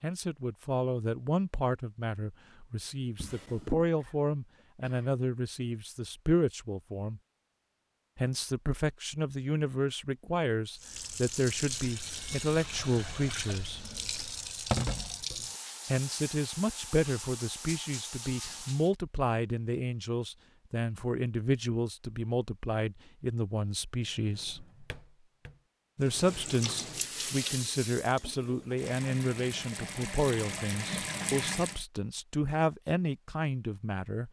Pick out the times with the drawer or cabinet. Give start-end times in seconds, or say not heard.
3.1-3.9, 23.9-25.6.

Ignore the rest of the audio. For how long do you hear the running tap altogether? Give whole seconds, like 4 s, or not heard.
14 s.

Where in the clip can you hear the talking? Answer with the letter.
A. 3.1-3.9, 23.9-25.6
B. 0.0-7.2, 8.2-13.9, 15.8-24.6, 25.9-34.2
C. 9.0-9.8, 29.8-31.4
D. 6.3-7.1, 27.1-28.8
B.